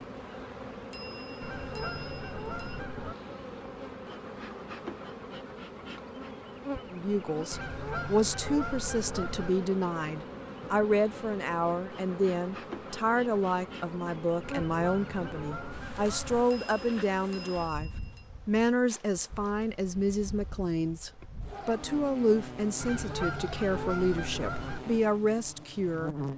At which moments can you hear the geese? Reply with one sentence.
The geese can be heard from 1.4 to 3.1 s, from 7.5 to 9.5 s, from 14.4 to 16.4 s and from 22.8 to 24.8 s.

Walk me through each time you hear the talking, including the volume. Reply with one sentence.
The talking can be heard from 6.9 to 26.1 s, at a steady volume.